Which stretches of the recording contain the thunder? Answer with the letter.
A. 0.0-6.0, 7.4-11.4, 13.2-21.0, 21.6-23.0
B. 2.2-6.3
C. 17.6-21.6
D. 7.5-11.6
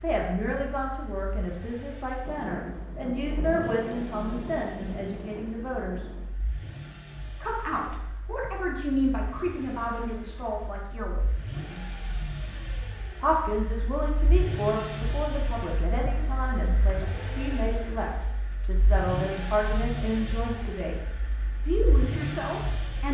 B.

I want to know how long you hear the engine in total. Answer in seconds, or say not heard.
23 s.